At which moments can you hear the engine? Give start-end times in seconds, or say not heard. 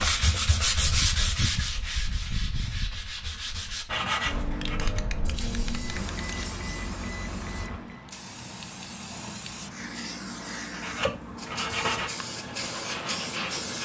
4.2-7.8.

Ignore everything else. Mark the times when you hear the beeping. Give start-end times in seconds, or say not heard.
5.5-8.1.